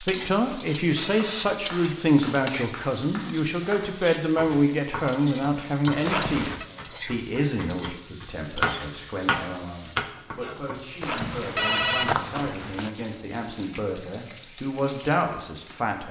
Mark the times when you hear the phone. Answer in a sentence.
You can hear the phone from 0.4 to 2.6 s, from 6.0 to 6.7 s and from 11.0 to 12.9 s.